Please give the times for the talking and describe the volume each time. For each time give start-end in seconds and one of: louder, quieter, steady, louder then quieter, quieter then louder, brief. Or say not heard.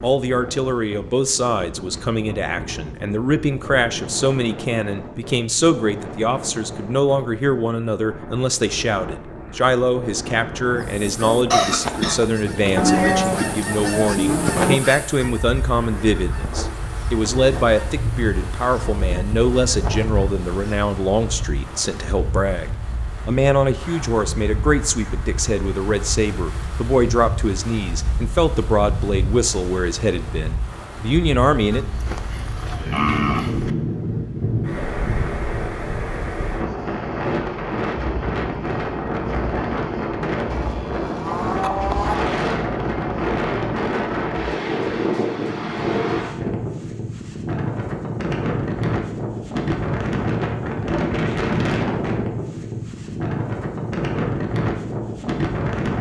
0.0-31.9 steady.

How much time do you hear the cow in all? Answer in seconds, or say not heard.
6 s.